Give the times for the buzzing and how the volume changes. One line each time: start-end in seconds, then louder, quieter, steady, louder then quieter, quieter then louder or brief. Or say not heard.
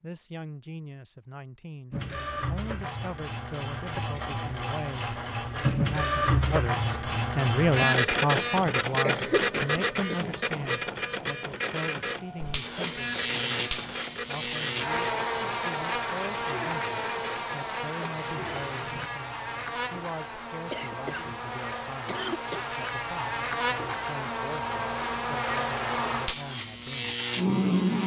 12.4-28.0 quieter then louder.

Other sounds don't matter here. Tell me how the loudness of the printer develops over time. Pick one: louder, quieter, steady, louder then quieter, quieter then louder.
louder then quieter.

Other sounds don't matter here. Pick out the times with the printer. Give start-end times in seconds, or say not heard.
1.9-19.1.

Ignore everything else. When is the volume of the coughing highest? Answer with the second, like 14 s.
9 s.